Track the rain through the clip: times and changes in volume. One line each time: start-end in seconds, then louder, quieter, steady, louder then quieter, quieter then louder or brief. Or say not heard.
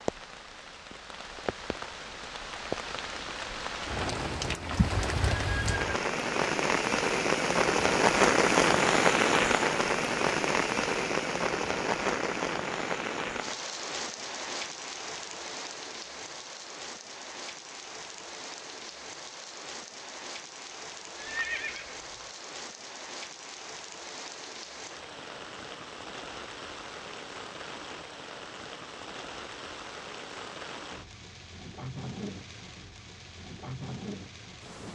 0.0-34.8 louder then quieter.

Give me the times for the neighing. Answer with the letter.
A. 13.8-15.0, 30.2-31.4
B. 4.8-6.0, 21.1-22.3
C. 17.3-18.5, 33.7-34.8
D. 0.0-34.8
B.